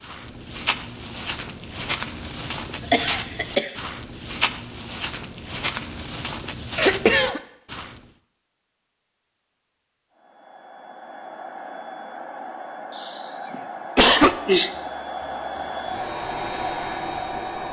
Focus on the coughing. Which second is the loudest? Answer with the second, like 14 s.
14 s.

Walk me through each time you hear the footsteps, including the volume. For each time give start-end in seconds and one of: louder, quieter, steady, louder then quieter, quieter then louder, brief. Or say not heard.
0.0-8.0 steady.